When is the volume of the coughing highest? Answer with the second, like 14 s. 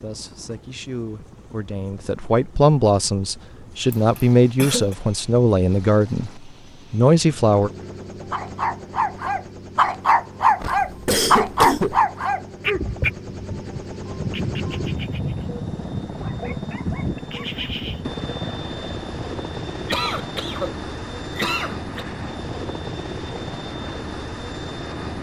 11 s.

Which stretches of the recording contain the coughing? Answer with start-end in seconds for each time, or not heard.
3.9-5.0, 10.6-12.0, 19.9-22.1.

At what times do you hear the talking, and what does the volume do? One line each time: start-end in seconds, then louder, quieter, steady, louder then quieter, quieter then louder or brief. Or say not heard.
0.0-7.7 louder.